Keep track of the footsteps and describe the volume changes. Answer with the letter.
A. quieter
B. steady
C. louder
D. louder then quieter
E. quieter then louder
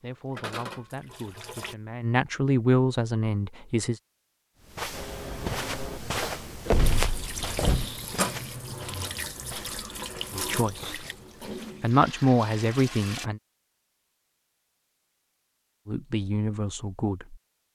A.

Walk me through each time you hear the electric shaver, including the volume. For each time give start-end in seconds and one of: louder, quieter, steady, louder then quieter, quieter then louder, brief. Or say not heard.
not heard.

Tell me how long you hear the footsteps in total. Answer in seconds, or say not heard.
7 s.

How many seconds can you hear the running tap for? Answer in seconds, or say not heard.
8 s.